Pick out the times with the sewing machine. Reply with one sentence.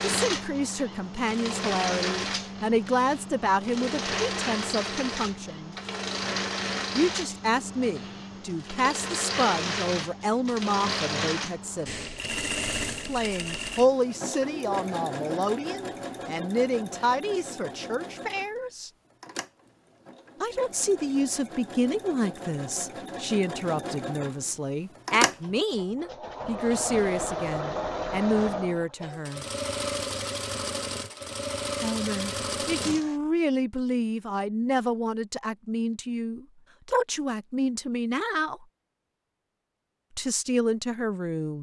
The sewing machine can be heard from 0.0 to 33.1 s.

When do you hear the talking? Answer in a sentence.
The talking can be heard from 0.0 to 5.8 s, from 7.0 to 11.9 s, from 13.1 to 18.9 s, from 20.4 to 29.4 s, from 31.8 to 38.6 s and from 40.1 to 41.5 s.